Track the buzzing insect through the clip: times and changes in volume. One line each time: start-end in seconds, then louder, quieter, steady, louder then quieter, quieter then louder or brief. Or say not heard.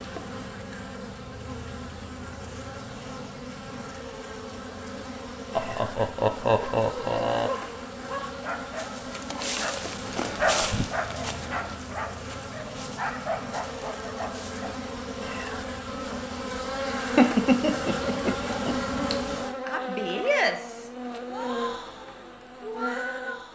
0.0-23.5 louder.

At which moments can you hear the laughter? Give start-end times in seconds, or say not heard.
5.5-7.5, 17.1-18.8.